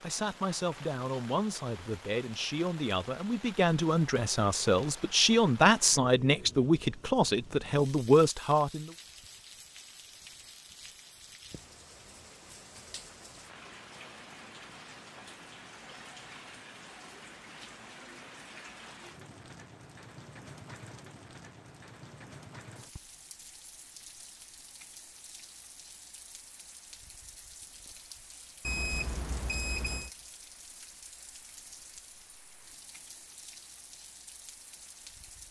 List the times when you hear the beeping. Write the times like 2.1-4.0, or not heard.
28.6-30.1.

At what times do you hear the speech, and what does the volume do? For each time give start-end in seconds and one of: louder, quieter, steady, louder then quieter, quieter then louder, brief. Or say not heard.
0.0-8.9 louder.